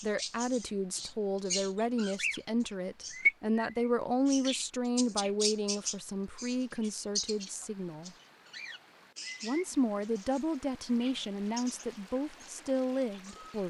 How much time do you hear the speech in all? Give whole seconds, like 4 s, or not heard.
12 s.